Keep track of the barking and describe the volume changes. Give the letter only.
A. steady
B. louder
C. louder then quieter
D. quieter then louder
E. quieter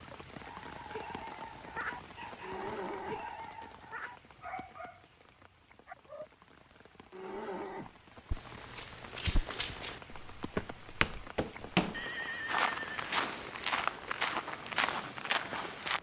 E.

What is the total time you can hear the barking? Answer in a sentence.
You can hear the barking for 6 seconds altogether.